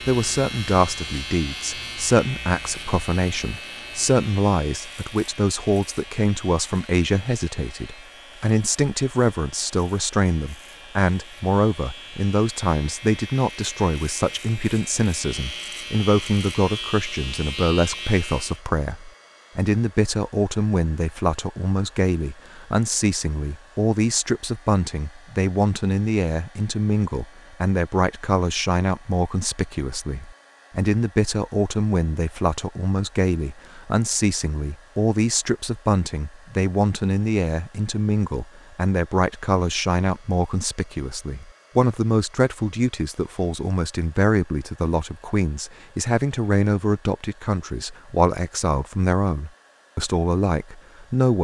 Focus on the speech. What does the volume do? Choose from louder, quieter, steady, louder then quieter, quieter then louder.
steady.